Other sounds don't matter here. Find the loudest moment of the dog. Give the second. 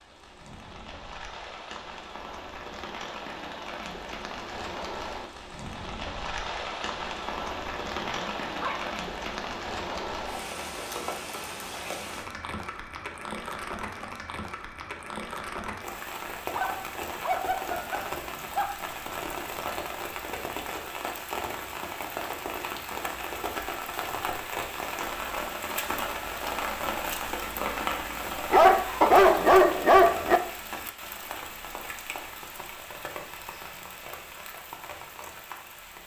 29 s.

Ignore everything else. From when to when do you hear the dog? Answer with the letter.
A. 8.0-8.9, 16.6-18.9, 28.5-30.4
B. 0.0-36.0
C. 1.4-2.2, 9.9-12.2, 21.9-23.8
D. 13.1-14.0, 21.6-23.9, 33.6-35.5
A.